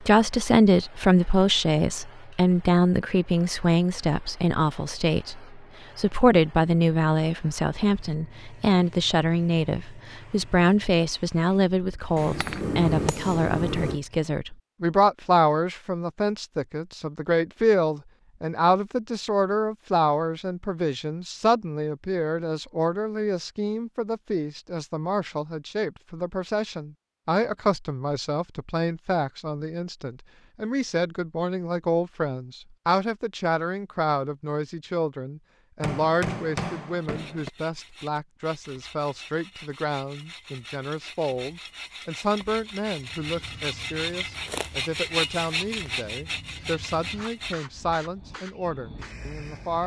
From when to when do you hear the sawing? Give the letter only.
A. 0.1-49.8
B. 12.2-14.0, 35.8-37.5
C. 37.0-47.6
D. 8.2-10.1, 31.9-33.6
C.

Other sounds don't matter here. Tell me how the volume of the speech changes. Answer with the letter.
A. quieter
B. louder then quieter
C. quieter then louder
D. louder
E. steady
A.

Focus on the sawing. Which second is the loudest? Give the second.
45 s.